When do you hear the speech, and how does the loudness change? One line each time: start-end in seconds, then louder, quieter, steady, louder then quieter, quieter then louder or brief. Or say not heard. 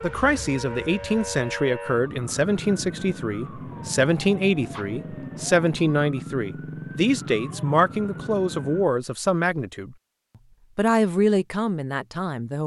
0.0-9.9 steady
10.8-12.6 brief.